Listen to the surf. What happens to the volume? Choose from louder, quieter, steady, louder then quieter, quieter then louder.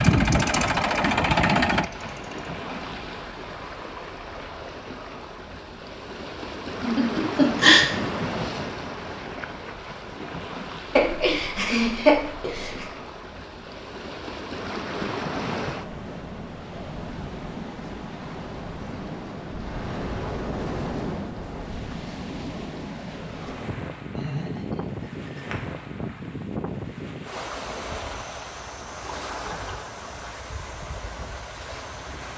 steady.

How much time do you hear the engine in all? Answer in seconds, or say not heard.
3 s.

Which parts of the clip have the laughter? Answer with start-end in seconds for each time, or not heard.
6.8-7.8, 10.9-12.8, 24.1-25.6.